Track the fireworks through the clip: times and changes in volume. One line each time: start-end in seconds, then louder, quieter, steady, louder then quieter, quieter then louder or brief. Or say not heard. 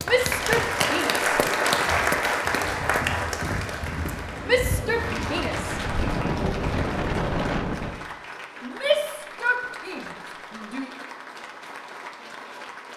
not heard.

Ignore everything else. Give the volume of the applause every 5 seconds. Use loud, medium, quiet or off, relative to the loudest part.
loud, medium, quiet.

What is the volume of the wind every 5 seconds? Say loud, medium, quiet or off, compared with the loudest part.
medium, loud, off.